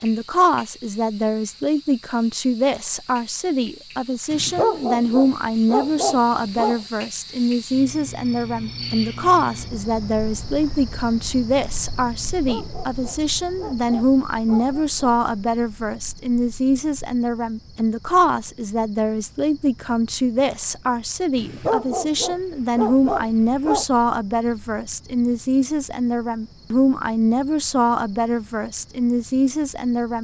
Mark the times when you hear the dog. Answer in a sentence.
The dog can be heard from 4.3 to 6.8 s, from 12.2 to 14.9 s and from 21.4 to 23.9 s.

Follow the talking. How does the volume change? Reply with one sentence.
The volume of the talking stays about the same.